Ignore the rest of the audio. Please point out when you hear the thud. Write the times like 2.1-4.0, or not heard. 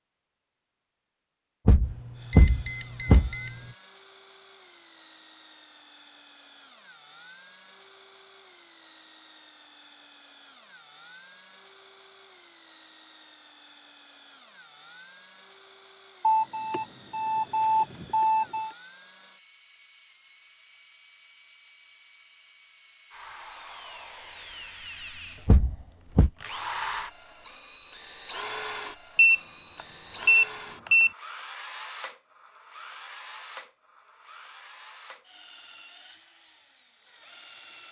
1.6-3.3, 25.4-26.3.